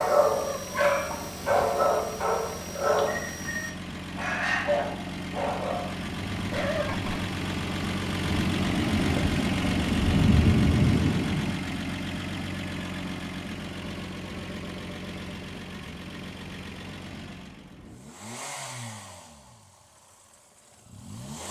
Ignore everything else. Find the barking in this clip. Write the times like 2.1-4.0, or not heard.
0.0-7.3.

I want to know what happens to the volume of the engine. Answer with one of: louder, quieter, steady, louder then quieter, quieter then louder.
louder then quieter.